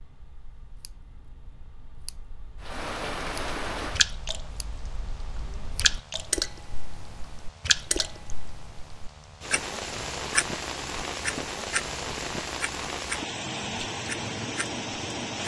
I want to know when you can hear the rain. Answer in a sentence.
You can hear the rain from 2.6 to 15.4 s.